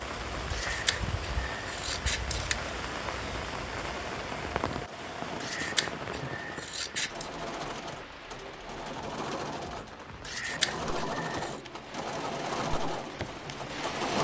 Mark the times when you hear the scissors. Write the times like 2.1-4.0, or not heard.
0.5-2.8, 5.4-7.3, 10.2-11.6.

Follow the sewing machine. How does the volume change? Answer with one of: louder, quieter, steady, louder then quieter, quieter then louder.
louder.